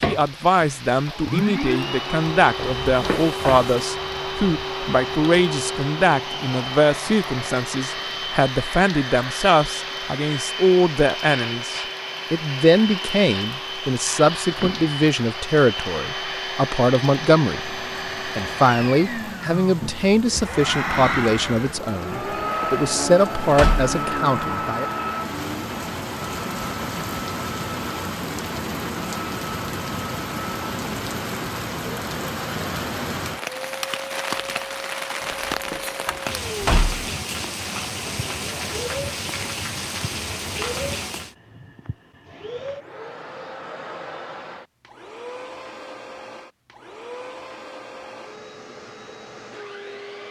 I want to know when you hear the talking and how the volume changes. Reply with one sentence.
You can hear the talking from 0.1 to 24.9 s, at a steady volume.